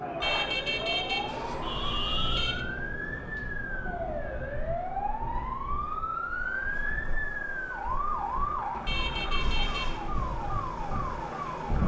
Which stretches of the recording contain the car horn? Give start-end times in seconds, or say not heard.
0.2-2.6, 8.8-10.0.